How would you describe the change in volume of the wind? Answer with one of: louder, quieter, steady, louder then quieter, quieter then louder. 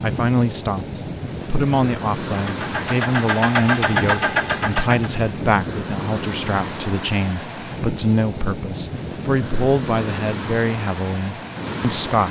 steady.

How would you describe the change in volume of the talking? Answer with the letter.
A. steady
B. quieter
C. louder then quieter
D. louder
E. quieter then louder
A.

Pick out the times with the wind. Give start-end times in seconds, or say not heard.
0.0-12.2.